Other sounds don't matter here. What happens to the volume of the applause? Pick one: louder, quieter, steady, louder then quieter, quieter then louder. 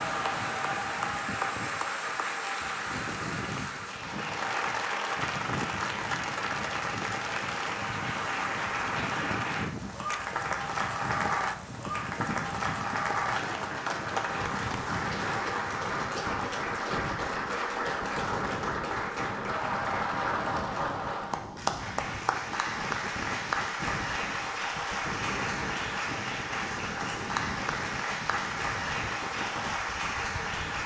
steady.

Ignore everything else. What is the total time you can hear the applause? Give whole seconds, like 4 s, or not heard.
31 s.